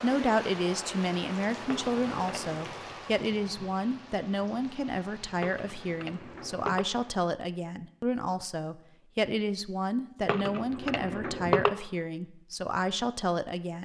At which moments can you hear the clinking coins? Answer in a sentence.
You can hear the clinking coins from 1.7 to 2.6 s, from 5.4 to 6.8 s and from 10.2 to 11.7 s.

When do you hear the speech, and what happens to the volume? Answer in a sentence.
The speech can be heard from 0.0 to 13.8 s, at a steady volume.